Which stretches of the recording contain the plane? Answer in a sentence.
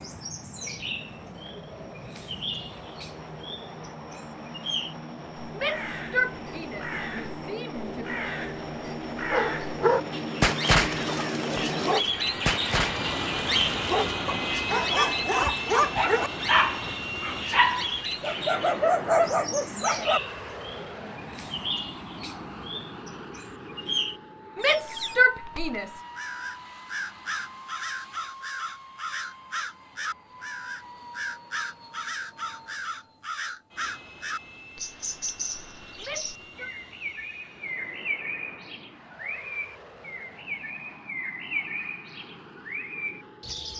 You can hear the plane from 0.0 to 43.7 s.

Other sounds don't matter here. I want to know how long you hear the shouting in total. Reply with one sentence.
You can hear the shouting for 5 seconds altogether.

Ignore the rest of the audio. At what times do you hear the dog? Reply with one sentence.
The dog can be heard from 9.3 to 20.2 s.